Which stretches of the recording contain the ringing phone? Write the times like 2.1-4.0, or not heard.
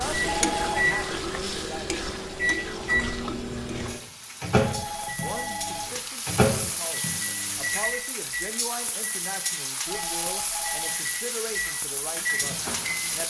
0.2-0.9, 4.7-6.0, 9.8-11.0.